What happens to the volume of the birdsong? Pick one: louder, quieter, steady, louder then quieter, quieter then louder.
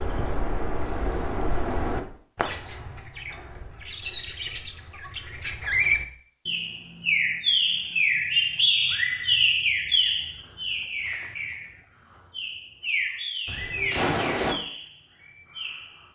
louder then quieter.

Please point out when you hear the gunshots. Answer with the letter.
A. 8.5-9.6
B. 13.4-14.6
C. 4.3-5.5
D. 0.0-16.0
B.